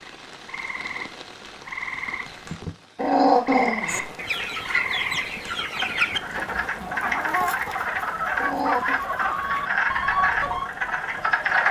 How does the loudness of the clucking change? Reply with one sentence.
The volume of the clucking stays about the same.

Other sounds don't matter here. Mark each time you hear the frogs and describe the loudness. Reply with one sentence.
You can hear the frogs from 0.0 to 11.6 s, getting louder.